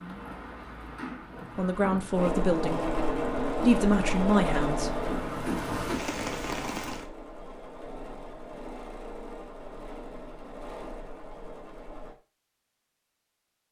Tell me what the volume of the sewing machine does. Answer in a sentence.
The volume of the sewing machine goes down.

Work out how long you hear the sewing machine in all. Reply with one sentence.
The sewing machine can be heard for 10 seconds in total.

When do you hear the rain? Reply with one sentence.
You can hear the rain from 0.0 to 7.0 s.